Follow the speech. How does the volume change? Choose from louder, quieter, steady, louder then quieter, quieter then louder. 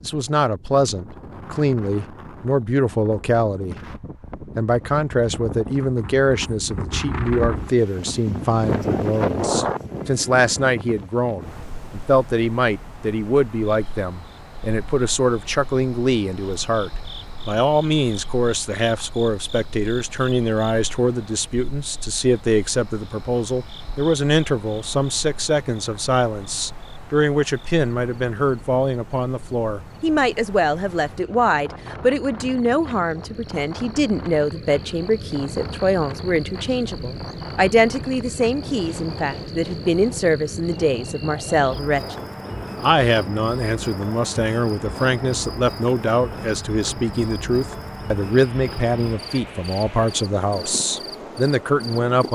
steady.